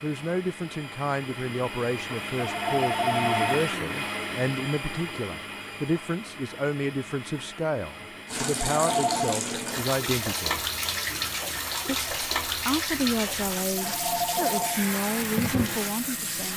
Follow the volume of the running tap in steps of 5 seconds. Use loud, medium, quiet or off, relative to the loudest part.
off, loud, loud, loud.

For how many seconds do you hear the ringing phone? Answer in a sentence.
You can hear the ringing phone for 3 seconds altogether.